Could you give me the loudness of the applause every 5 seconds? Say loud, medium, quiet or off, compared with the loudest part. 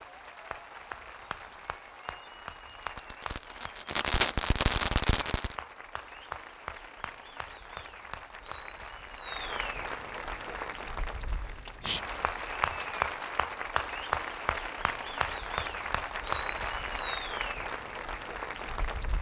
medium, medium, loud, loud.